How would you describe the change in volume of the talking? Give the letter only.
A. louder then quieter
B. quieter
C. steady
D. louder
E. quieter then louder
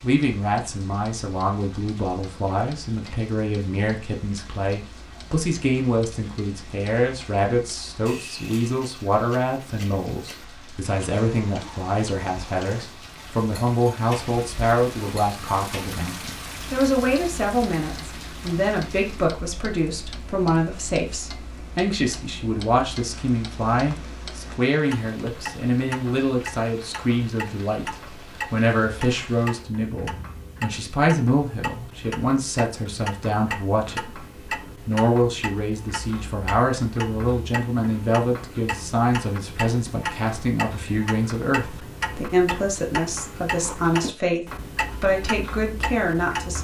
C.